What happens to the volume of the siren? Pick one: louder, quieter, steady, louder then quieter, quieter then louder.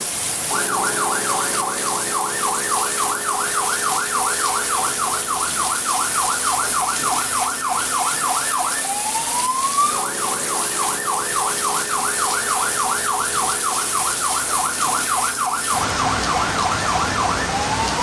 steady.